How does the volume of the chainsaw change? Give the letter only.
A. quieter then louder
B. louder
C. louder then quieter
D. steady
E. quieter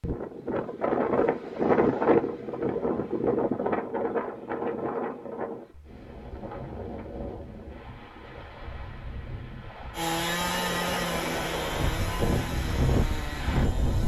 E.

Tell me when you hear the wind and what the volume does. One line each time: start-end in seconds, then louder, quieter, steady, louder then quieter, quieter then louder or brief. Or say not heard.
0.0-14.0 quieter then louder.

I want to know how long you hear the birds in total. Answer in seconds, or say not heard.
not heard.